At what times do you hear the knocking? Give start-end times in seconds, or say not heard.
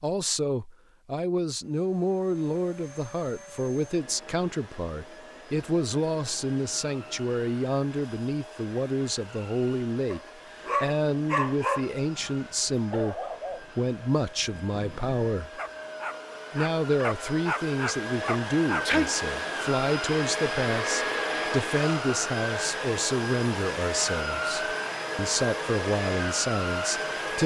not heard.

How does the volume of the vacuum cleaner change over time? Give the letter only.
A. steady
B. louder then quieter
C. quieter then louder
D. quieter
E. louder
E.